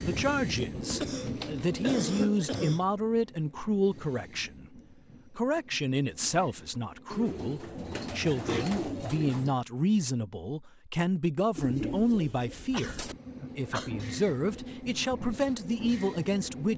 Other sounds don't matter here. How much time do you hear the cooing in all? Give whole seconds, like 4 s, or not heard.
6 s.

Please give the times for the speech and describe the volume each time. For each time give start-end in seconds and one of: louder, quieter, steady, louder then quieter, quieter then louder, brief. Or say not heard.
0.0-16.7 steady.